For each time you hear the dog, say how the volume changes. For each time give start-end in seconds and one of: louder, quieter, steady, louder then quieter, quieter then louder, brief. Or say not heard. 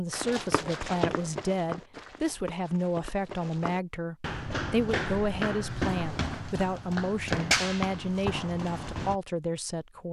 not heard.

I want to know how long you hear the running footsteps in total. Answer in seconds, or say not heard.
9 s.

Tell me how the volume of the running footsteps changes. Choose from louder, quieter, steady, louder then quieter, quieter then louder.
quieter then louder.